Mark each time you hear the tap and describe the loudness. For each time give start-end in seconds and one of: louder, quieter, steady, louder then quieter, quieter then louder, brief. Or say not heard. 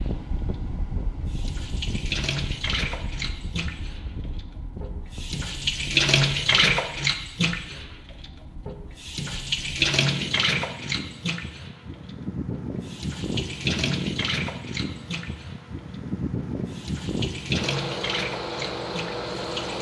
0.0-19.7 louder then quieter.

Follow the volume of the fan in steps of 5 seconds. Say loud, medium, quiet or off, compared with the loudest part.
medium, quiet, loud, loud.